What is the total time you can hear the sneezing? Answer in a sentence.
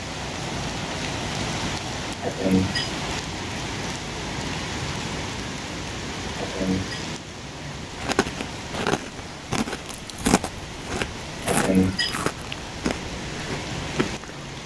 The sneezing can be heard for 2 seconds in total.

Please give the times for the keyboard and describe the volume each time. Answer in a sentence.
You can't hear the keyboard here.